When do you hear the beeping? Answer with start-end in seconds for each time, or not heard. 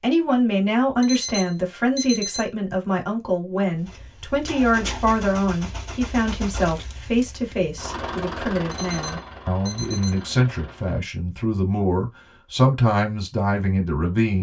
1.0-2.5, 8.7-10.2.